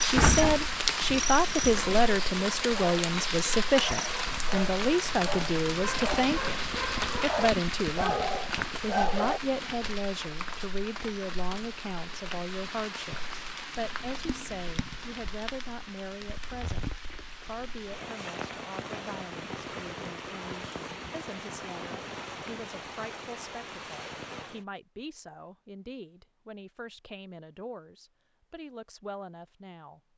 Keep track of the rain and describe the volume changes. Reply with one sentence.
The loudness of the rain goes down.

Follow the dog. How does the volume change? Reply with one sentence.
The loudness of the dog goes up.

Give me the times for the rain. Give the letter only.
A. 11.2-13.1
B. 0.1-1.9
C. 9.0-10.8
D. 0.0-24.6
D.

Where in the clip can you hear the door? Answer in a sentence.
The door can be heard from 0.1 to 1.9 s.